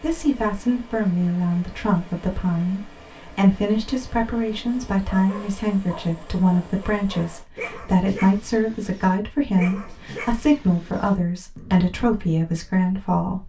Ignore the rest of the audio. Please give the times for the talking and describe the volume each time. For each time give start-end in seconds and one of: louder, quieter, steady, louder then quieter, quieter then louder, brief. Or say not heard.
0.0-13.4 steady.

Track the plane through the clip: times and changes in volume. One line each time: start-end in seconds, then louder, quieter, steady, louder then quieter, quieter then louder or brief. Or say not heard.
not heard.